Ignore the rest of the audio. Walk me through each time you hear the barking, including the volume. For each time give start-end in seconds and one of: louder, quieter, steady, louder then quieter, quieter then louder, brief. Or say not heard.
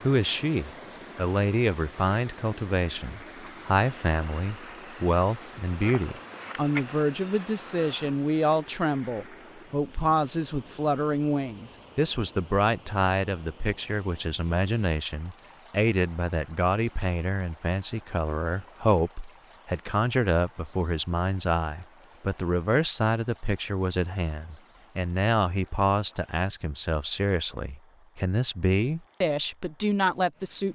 not heard.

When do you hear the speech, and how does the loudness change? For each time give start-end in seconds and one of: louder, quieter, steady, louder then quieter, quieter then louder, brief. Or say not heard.
0.0-30.7 steady.